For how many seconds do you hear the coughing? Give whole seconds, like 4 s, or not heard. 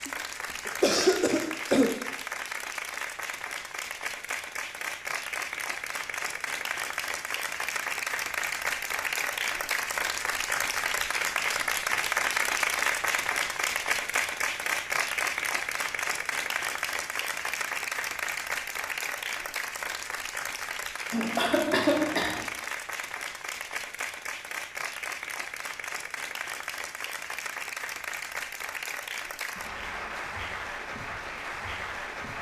3 s.